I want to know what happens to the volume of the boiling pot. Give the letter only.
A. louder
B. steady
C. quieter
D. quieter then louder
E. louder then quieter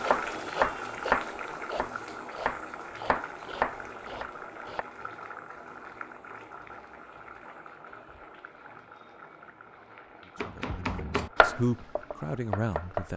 C.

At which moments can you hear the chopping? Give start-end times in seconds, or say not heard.
0.0-4.8, 10.3-13.1.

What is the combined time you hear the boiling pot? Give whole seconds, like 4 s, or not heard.
13 s.